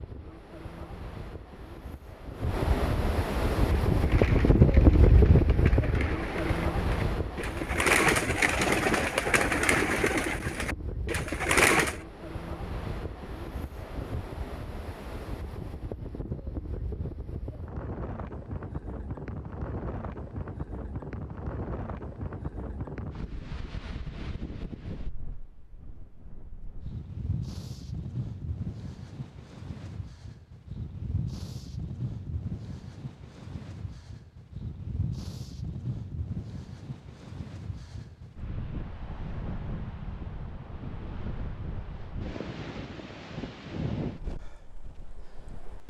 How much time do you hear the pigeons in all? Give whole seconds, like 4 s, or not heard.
8 s.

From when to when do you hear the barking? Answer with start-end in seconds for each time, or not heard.
not heard.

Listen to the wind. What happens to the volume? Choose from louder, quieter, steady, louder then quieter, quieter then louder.
quieter.